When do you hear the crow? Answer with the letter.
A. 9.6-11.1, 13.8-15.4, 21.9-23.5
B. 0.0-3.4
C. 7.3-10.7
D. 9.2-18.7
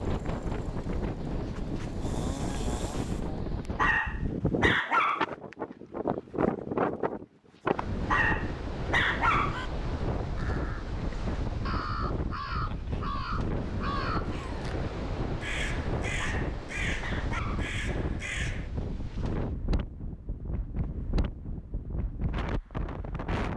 D.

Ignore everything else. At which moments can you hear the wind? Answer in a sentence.
The wind can be heard from 0.0 to 23.5 s.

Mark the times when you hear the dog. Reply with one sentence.
The dog can be heard from 3.8 to 5.2 s, from 8.1 to 9.6 s and from 16.1 to 17.7 s.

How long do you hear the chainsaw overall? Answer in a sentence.
You can hear the chainsaw for 3 seconds altogether.